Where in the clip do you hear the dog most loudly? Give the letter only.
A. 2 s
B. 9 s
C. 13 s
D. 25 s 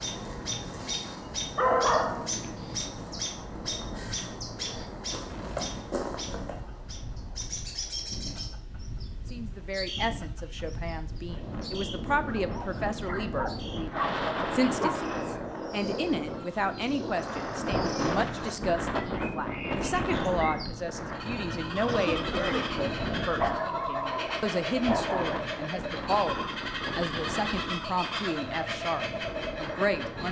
A.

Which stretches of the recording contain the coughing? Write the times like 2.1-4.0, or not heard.
12.8-13.3, 21.8-22.8.